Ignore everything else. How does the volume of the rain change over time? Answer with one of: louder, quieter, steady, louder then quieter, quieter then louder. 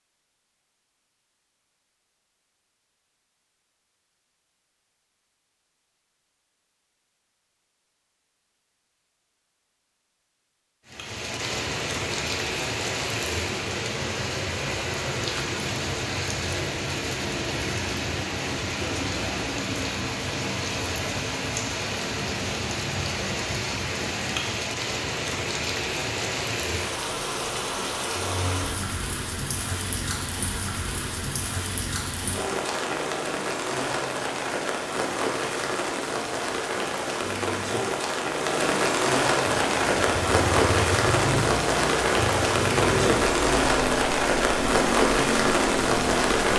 louder.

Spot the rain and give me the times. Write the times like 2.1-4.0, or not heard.
10.8-46.5.